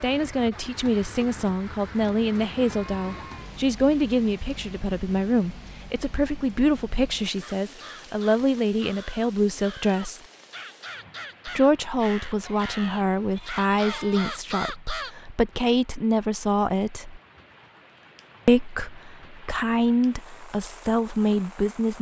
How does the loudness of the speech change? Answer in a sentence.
The volume of the speech stays about the same.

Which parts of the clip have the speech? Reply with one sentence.
You can hear the speech from 0.0 to 10.2 s, from 11.4 to 17.2 s and from 18.4 to 21.9 s.